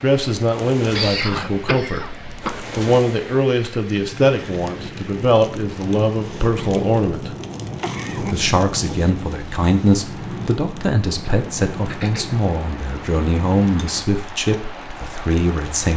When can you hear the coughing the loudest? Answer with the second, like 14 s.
1 s.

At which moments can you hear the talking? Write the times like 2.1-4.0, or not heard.
0.0-7.3, 8.2-15.9.